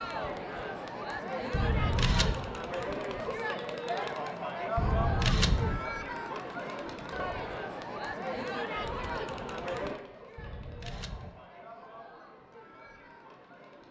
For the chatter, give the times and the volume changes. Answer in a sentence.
The chatter can be heard from 0.0 to 13.8 s, getting quieter.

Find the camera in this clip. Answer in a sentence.
The camera can be heard from 1.5 to 2.5 s, from 4.8 to 5.8 s and from 10.3 to 11.3 s.